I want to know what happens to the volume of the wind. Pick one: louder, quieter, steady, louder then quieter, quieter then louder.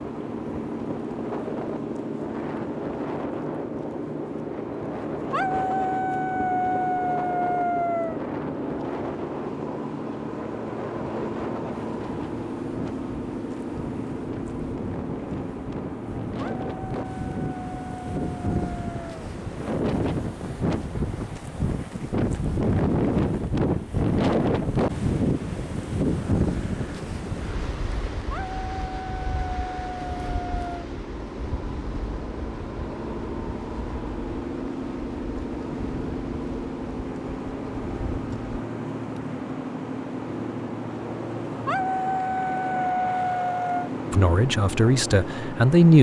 louder then quieter.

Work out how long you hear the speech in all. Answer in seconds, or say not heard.
2 s.